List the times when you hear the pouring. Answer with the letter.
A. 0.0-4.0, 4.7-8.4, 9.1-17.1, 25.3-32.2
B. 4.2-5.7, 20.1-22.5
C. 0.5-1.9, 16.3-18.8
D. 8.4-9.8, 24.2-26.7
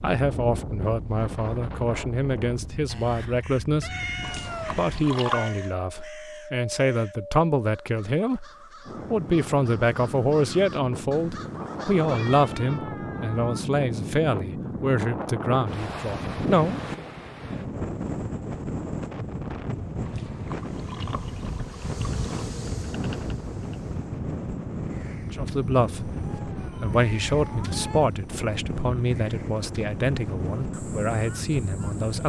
B.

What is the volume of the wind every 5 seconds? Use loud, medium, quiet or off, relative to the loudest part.
medium, medium, loud, loud, loud, loud, loud.